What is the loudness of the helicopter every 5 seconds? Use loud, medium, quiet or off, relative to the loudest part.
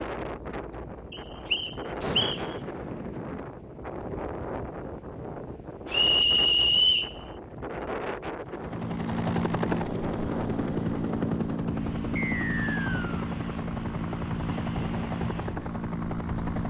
off, loud, loud, loud.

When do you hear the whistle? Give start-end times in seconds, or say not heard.
1.1-2.4, 5.9-7.1, 12.2-13.2.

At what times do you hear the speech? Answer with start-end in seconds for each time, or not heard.
not heard.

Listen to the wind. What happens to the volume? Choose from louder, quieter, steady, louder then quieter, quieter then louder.
steady.